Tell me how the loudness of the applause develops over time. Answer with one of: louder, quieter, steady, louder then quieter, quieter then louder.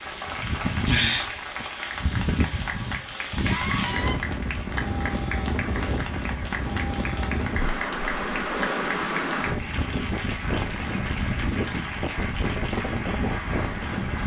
steady.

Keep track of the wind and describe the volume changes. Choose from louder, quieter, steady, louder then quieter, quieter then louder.
steady.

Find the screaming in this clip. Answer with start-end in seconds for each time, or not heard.
3.4-4.2.